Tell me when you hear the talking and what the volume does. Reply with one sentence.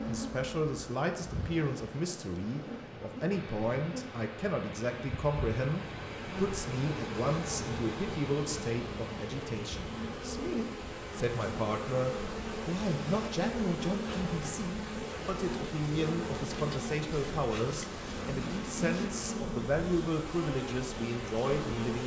You can hear the talking from 0.1 to 22.0 s, at a steady volume.